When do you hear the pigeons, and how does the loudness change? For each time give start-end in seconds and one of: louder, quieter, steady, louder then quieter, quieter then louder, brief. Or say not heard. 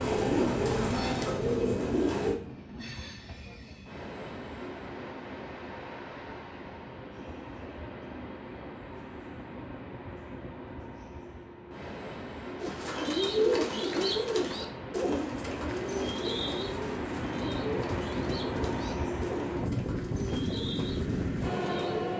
0.0-2.4 brief
12.6-22.1 quieter.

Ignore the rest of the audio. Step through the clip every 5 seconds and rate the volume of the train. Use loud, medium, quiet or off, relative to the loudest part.
medium, medium, medium, loud, loud.